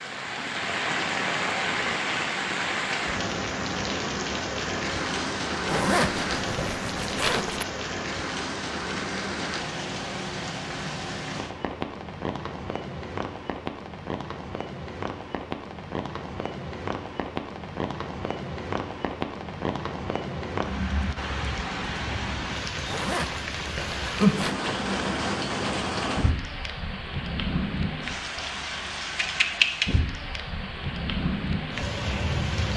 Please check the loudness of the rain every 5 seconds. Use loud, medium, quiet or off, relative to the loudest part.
loud, loud, medium, medium, loud, loud, loud.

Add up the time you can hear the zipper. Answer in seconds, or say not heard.
4 s.